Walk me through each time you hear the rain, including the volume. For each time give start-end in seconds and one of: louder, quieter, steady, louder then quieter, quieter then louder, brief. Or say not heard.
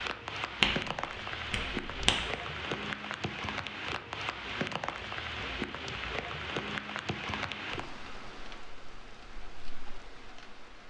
0.0-10.8 quieter.